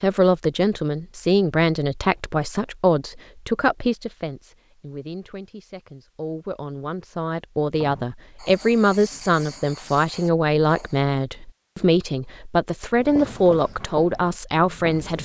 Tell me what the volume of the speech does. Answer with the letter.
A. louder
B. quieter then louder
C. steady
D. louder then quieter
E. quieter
B.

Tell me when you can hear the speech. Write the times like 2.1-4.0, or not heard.
0.0-15.1.